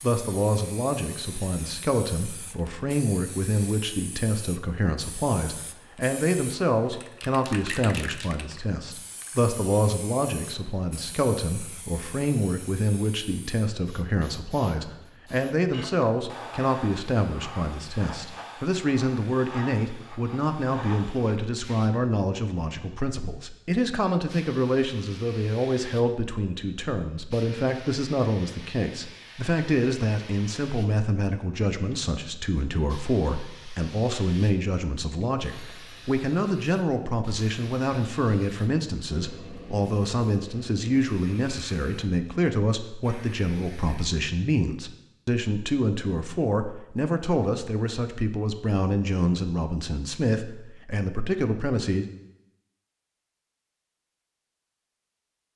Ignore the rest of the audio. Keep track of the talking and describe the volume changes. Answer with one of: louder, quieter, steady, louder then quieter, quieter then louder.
steady.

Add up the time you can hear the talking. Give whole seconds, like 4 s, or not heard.
52 s.